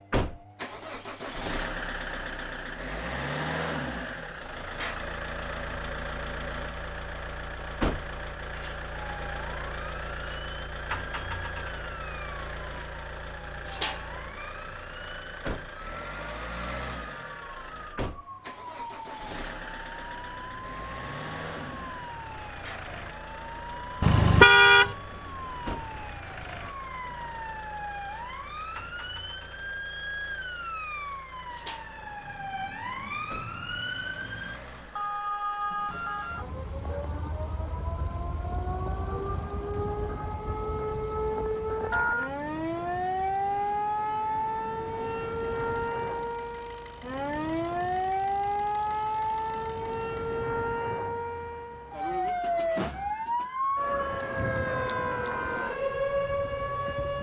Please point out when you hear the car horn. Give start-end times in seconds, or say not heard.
24.0-24.9.